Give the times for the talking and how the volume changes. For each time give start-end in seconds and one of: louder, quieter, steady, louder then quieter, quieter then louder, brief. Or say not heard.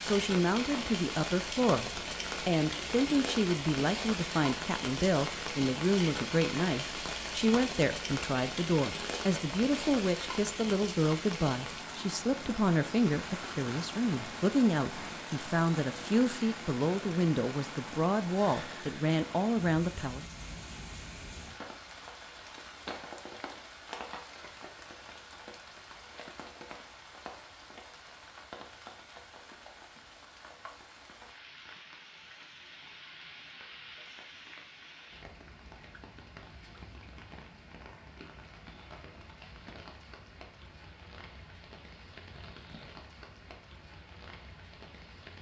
0.0-20.2 steady.